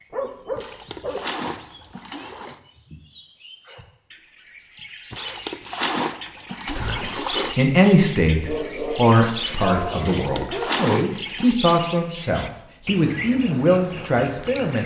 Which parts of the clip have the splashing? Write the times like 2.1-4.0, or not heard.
0.6-2.6, 5.1-7.6, 10.0-11.6.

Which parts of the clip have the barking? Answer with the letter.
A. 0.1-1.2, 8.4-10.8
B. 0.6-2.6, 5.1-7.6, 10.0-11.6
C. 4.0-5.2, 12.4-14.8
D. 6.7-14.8
A.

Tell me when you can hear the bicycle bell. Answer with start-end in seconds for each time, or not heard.
not heard.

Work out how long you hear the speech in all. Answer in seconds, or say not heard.
8 s.